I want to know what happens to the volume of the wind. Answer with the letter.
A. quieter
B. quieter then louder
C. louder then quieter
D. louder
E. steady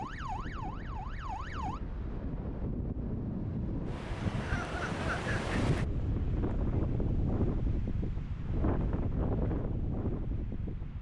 D.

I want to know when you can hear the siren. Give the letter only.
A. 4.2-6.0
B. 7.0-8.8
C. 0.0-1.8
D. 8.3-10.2
C.